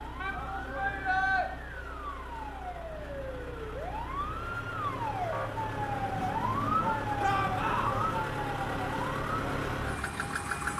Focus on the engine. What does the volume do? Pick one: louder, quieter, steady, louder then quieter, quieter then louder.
louder.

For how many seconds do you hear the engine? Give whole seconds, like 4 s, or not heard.
11 s.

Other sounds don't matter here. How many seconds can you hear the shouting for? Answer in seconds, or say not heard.
2 s.